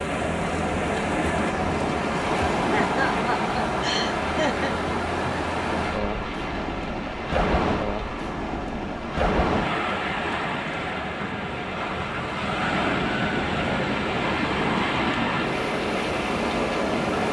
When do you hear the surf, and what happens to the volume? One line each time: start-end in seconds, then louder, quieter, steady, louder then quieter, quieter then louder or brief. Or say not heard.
0.0-17.2 steady.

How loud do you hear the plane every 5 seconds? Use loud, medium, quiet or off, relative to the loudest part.
loud, medium, loud, loud.